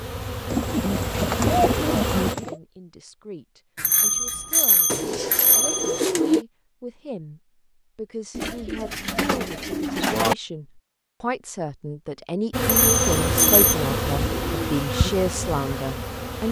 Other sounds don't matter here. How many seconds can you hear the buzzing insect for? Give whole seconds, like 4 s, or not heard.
6 s.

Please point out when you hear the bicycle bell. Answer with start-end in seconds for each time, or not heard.
3.8-6.0, 12.6-13.8.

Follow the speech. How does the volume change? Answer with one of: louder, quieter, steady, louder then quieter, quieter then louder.
louder.